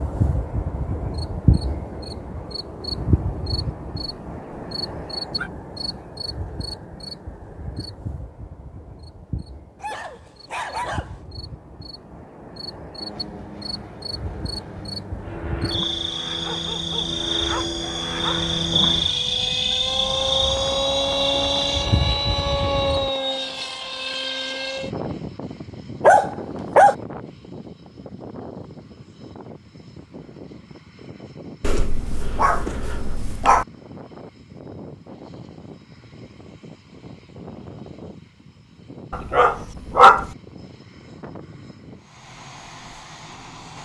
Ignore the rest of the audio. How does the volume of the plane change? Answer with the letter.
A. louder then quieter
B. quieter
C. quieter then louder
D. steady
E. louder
A.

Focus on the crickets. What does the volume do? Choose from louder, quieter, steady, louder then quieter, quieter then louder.
quieter then louder.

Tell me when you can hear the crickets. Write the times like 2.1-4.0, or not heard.
0.0-23.1.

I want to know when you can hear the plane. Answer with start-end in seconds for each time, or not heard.
12.9-43.8.